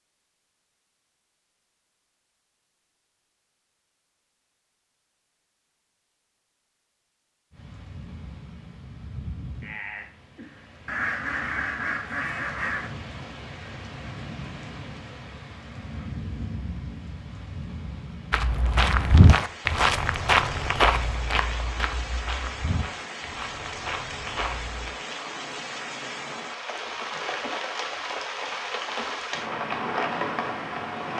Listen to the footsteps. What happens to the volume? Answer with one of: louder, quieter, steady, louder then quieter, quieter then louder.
quieter.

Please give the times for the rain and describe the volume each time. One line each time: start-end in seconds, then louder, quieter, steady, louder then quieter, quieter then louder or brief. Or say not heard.
7.5-31.1 louder.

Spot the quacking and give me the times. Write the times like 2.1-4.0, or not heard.
10.8-12.9.